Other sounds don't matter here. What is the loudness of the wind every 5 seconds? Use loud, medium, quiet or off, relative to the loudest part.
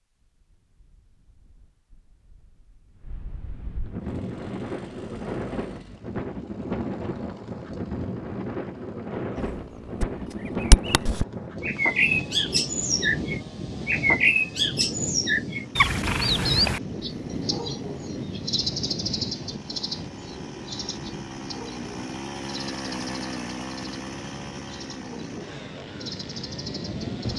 medium, loud, loud, loud, medium, loud.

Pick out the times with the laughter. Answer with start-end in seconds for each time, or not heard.
not heard.